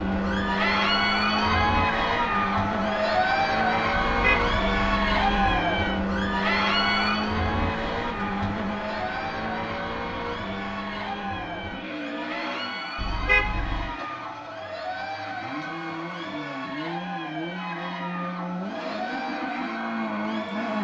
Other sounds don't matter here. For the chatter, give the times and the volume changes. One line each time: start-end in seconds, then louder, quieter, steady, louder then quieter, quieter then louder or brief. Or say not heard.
0.1-20.7 quieter.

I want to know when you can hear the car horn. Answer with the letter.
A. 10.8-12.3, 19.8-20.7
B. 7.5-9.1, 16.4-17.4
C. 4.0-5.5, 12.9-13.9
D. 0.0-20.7
C.